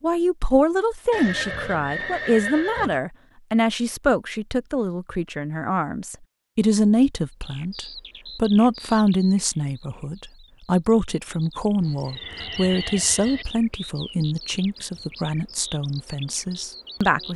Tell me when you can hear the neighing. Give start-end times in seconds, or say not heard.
1.1-3.0, 11.8-13.4.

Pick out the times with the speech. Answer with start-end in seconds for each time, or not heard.
0.0-17.3.